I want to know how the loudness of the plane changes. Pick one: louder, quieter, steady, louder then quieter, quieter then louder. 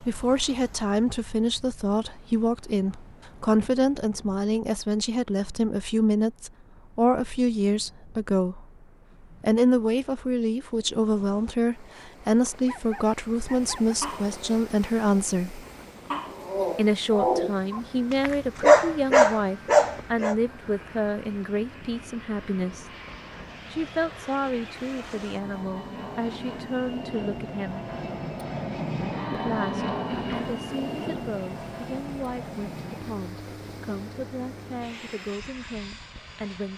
louder then quieter.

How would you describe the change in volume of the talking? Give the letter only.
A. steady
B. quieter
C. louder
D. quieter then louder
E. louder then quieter
B.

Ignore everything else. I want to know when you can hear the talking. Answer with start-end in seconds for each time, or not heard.
0.0-8.7, 9.4-15.6, 16.8-22.9, 23.7-27.8, 29.3-36.7.